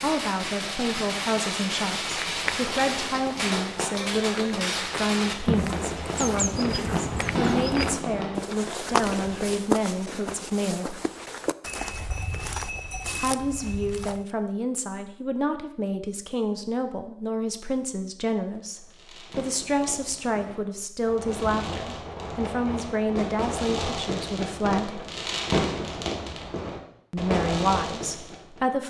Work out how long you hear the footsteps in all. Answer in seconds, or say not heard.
12 s.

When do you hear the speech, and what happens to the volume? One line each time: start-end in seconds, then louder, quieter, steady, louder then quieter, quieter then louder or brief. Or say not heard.
0.0-10.9 steady
13.2-25.0 steady
27.1-28.8 brief.